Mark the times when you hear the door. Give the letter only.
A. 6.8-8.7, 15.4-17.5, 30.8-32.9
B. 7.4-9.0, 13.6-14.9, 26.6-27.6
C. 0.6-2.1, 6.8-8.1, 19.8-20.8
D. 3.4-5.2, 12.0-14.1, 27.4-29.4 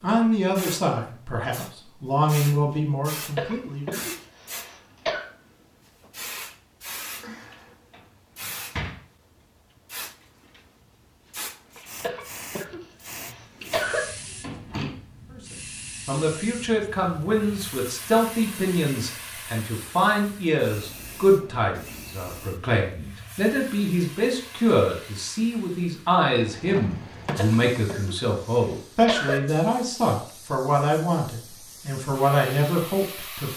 B.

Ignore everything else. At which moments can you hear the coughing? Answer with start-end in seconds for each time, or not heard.
3.4-5.2, 12.0-14.1, 27.4-29.4.